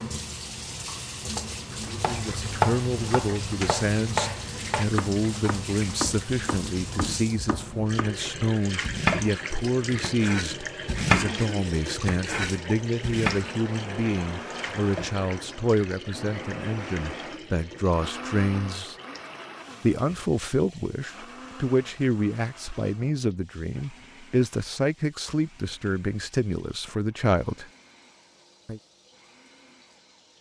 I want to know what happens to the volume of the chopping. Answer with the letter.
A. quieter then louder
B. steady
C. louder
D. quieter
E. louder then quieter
A.